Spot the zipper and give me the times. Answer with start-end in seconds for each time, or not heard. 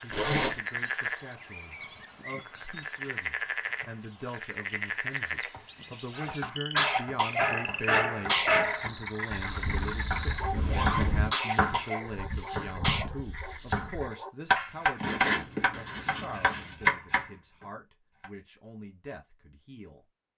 0.1-0.6, 9.3-11.3, 14.9-16.7.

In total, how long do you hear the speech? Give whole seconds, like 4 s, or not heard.
20 s.